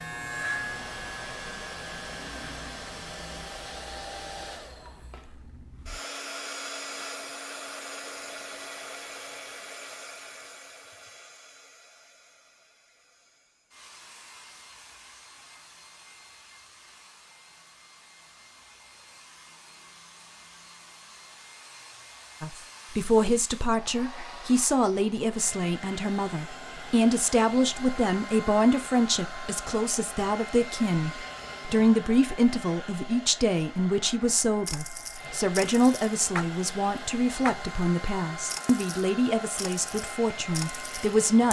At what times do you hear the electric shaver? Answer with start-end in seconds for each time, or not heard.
0.0-2.5.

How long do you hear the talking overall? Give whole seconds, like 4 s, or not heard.
19 s.